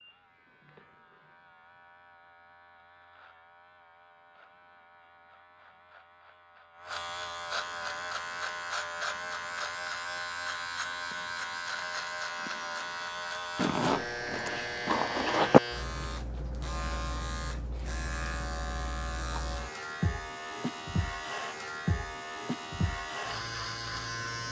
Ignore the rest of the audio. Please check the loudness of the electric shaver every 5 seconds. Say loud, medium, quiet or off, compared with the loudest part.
quiet, loud, loud, loud, loud.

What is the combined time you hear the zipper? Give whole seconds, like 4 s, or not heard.
2 s.